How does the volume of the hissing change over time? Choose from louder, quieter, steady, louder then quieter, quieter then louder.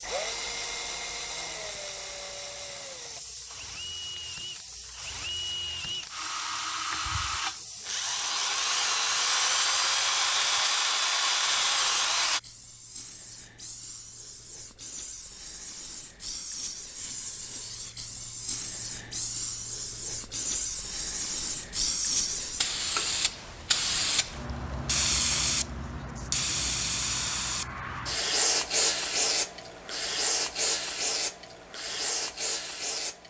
louder.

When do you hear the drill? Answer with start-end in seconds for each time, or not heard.
0.0-12.4.